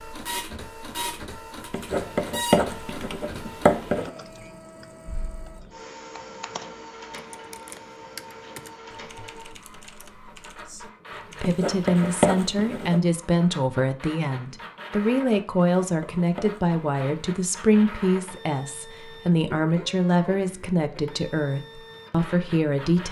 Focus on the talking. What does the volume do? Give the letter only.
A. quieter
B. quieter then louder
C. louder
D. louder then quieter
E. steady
E.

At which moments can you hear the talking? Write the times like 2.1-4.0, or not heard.
11.4-23.0.